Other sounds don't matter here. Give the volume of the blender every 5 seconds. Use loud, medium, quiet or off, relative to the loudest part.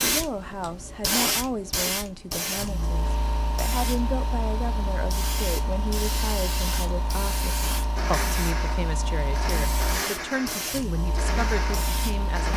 off, loud, loud.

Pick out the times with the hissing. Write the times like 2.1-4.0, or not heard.
0.0-12.5.